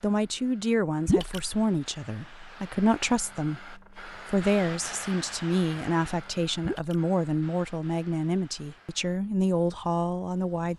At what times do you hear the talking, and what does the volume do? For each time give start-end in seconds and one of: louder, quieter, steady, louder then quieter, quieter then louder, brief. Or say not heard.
0.0-10.7 steady.